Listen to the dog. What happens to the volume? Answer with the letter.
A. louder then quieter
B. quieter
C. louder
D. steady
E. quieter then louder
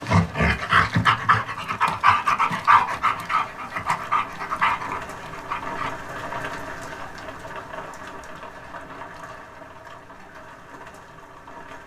B.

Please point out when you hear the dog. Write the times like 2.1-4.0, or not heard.
0.0-5.9.